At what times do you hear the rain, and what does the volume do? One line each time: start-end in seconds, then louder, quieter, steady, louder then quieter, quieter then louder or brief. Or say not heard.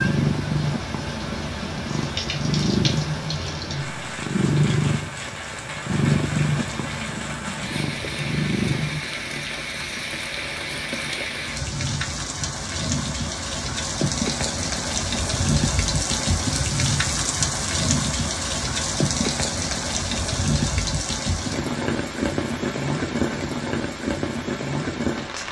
0.0-25.4 louder.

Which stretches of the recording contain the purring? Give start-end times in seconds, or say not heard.
0.0-9.0.